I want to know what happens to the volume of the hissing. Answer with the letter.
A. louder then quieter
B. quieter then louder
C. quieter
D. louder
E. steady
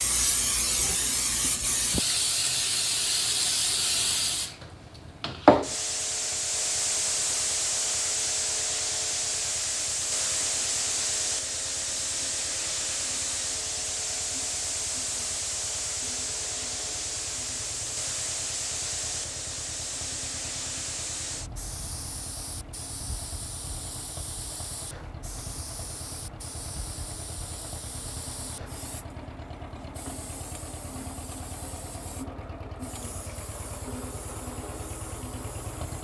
C.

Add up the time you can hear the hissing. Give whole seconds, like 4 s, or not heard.
36 s.